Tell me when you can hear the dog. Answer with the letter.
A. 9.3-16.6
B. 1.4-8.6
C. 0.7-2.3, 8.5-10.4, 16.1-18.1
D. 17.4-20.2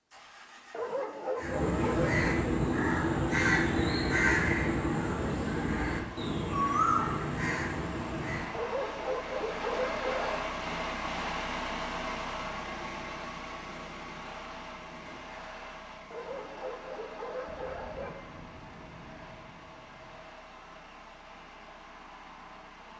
C.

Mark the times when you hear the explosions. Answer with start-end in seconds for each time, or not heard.
17.4-20.2.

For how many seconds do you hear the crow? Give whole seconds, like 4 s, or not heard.
7 s.